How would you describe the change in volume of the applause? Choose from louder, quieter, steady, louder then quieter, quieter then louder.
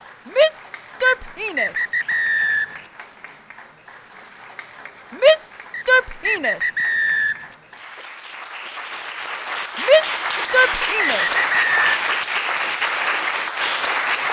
louder.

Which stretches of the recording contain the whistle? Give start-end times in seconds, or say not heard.
1.1-2.9, 5.7-7.5, 10.4-12.0.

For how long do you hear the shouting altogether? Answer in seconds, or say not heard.
4 s.